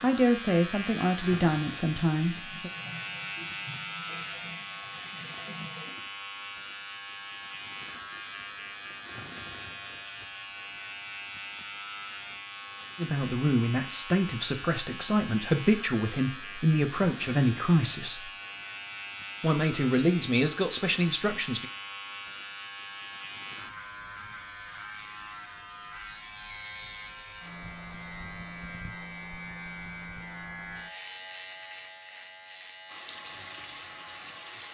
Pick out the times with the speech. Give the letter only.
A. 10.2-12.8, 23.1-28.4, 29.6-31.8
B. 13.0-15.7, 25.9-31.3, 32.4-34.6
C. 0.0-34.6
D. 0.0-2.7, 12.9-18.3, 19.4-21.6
D.